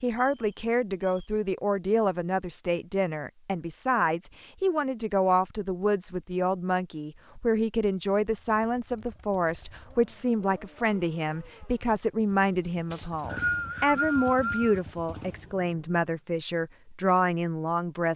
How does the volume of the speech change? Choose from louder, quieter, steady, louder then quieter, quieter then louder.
steady.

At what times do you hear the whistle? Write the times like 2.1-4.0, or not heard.
0.1-1.4, 12.9-14.8.